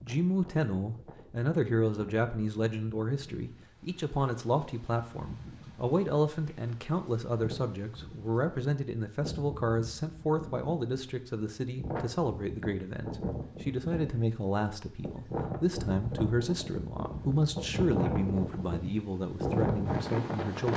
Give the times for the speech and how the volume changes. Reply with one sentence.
You can hear the speech from 0.0 to 20.7 s, at a steady volume.